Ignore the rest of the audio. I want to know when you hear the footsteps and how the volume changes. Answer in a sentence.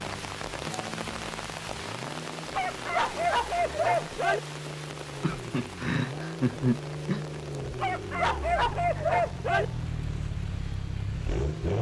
The footsteps can't be heard in this clip.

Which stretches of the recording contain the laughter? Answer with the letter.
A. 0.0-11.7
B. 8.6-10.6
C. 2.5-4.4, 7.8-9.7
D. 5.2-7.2
D.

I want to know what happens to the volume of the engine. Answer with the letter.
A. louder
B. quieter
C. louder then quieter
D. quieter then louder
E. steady
A.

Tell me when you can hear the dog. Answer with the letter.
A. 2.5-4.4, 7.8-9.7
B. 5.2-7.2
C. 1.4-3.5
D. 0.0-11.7
A.